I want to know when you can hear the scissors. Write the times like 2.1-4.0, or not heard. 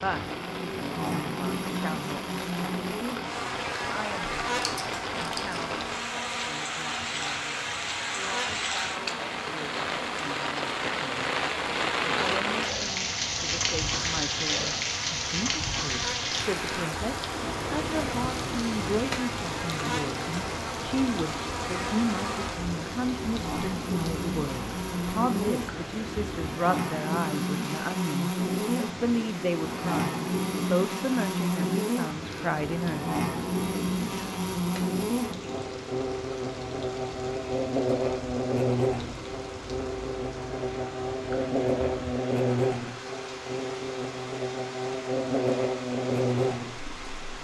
4.5-5.8.